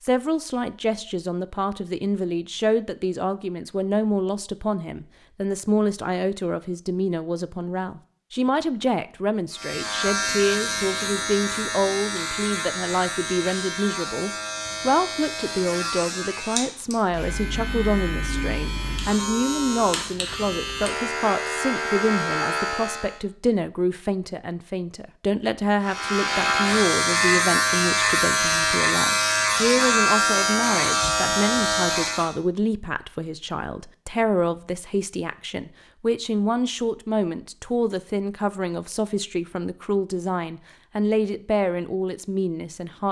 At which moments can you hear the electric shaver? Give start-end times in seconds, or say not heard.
9.5-23.2, 25.8-32.4.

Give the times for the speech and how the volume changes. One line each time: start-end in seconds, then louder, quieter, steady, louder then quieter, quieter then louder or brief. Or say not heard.
0.0-43.0 steady.